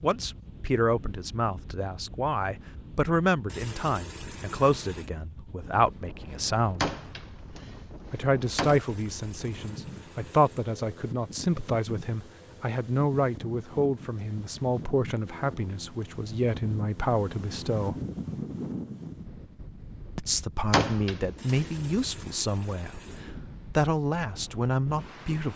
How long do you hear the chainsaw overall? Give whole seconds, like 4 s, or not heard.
not heard.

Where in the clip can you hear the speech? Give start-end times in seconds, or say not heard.
0.0-6.9, 8.1-17.9, 20.1-23.0, 23.6-25.5.